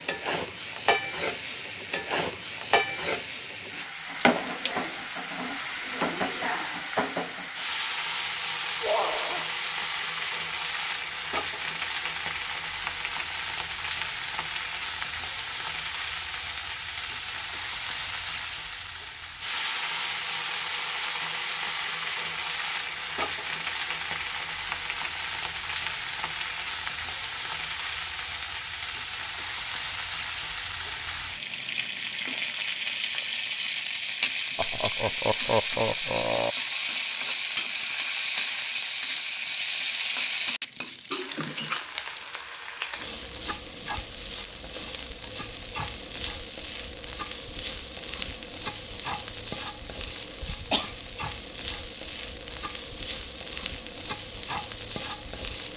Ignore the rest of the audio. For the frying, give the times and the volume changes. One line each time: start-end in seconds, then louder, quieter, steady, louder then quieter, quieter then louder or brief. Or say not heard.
0.0-55.7 steady.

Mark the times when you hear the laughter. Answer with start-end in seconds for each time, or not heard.
8.8-9.5, 34.5-36.5.